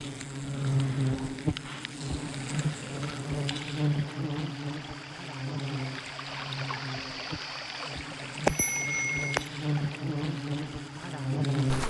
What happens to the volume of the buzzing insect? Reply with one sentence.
The volume of the buzzing insect goes down, then up.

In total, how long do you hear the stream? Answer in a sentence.
You can hear the stream for 10 seconds altogether.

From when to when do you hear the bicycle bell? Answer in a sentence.
The bicycle bell can be heard from 8.4 to 9.4 s.